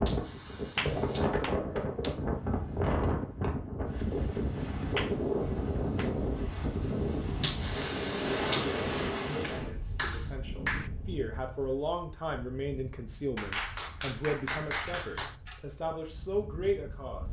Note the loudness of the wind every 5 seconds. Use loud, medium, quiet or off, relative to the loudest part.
loud, loud, quiet, quiet.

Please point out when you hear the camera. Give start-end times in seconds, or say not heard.
0.1-1.3, 7.4-8.7, 14.8-15.6.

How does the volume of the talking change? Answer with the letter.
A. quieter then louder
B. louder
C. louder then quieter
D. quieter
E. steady
B.